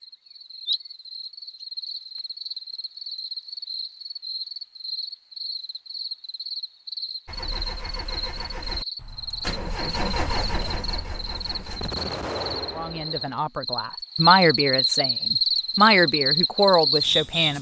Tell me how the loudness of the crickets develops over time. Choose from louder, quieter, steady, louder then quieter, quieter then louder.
louder.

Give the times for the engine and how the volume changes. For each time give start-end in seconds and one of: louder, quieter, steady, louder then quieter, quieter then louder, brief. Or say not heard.
7.2-11.9 louder then quieter.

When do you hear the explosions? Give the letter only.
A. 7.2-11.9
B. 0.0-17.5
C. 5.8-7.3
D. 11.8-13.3
D.